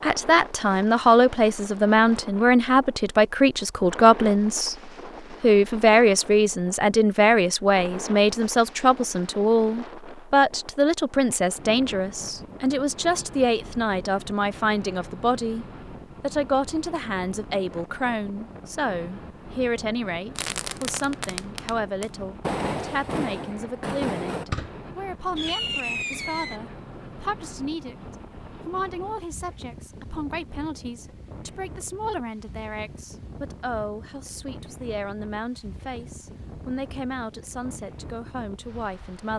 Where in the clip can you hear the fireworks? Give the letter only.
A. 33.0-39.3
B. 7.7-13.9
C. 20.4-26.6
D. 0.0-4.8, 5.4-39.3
C.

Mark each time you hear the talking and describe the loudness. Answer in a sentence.
You can hear the talking from 0.0 to 4.8 s, at a steady volume; and from 5.4 to 39.3 s, getting quieter.